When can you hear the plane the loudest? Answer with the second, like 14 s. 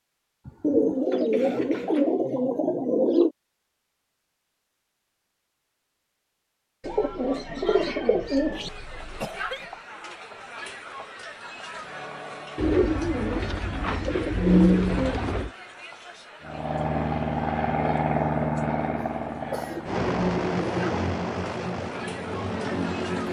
18 s.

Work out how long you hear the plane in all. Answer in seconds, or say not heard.
7 s.